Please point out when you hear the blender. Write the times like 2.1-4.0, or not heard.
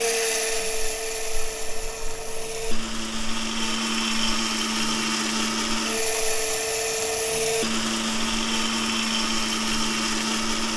0.0-10.7.